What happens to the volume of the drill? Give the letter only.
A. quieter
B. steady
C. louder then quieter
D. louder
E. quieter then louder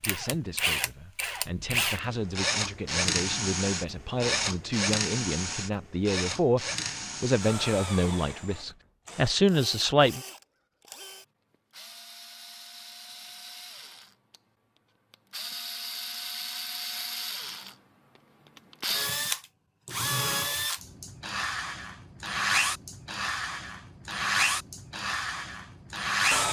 E.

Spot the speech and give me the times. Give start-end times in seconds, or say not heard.
0.0-10.2.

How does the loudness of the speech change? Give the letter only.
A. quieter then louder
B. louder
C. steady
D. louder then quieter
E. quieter
B.